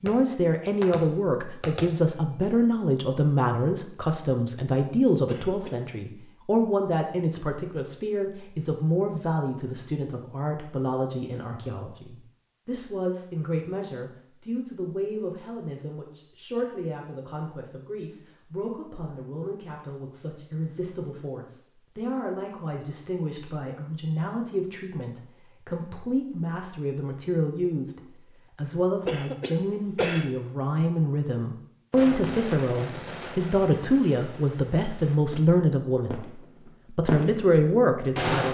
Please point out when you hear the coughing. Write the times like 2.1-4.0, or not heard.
5.2-5.8, 29.1-30.3.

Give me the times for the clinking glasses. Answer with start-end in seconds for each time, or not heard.
not heard.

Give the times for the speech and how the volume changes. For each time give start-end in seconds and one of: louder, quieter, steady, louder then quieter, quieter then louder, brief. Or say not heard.
0.0-38.4 quieter then louder.